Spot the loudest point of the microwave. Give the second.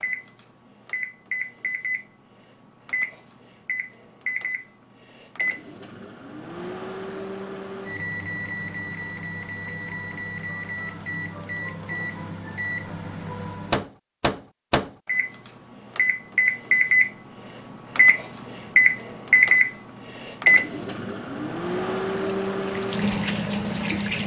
19 s.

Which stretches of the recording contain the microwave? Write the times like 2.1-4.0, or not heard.
0.0-24.2.